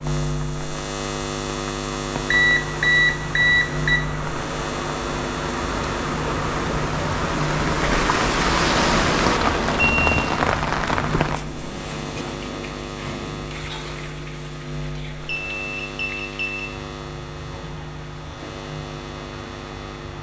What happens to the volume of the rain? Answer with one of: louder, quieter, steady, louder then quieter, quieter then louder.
louder then quieter.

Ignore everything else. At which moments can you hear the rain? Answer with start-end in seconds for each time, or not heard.
0.0-20.1.